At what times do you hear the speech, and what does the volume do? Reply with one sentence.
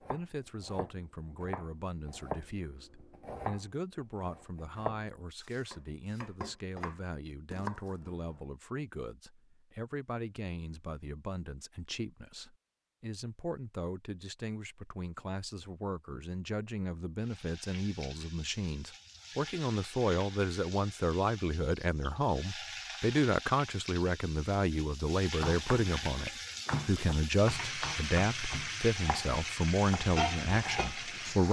The speech can be heard from 0.0 to 31.4 s, getting louder.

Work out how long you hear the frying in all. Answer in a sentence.
You can hear the frying for 14 seconds altogether.